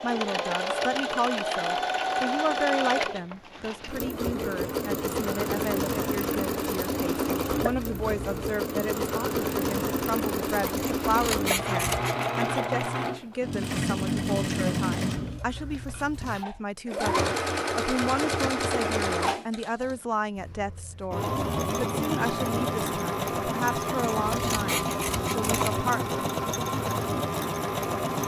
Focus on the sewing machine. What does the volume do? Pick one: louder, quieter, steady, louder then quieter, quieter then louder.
steady.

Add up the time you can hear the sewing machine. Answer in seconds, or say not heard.
28 s.